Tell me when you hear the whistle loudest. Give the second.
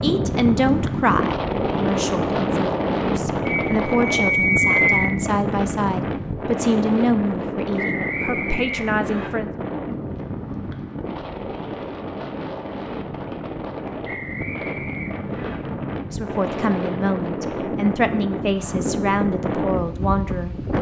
5 s.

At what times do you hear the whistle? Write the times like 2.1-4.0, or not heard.
3.5-5.1, 7.8-9.3, 14.1-15.6.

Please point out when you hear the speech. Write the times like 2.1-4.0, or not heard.
0.0-9.6, 16.1-20.6.